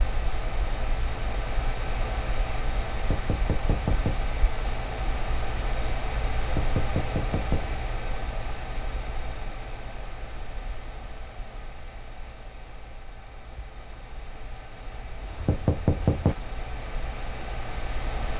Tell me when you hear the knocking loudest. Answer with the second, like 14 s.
16 s.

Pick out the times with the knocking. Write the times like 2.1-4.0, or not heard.
3.0-4.2, 6.5-7.7, 15.3-16.4.